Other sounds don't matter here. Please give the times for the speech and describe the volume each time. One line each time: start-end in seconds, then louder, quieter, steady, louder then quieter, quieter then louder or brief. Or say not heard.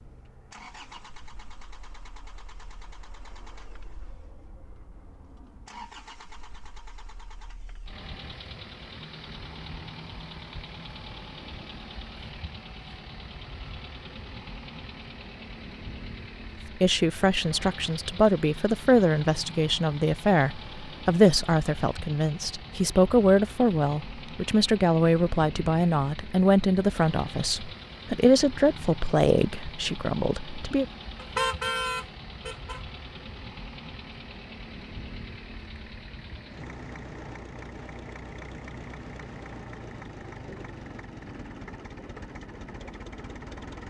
16.8-30.9 steady.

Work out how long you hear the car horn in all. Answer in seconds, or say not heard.
2 s.